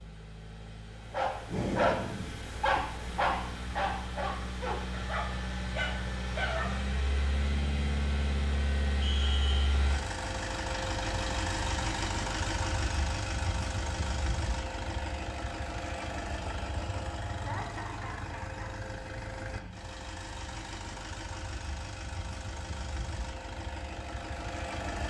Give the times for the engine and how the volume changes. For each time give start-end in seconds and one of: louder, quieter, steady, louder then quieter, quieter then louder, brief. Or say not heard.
0.0-25.0 louder then quieter.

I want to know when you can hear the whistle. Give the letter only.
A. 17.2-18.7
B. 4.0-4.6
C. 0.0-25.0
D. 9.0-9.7
D.